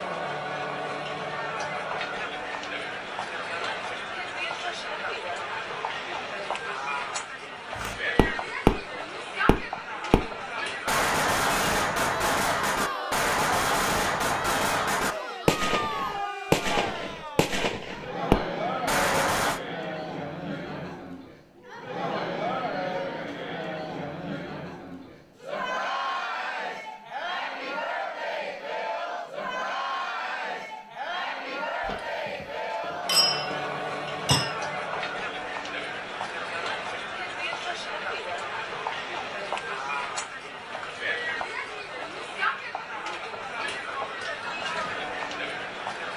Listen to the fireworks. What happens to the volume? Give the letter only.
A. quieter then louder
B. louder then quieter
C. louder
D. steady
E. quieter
D.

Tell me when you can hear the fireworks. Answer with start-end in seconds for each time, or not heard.
7.8-19.6.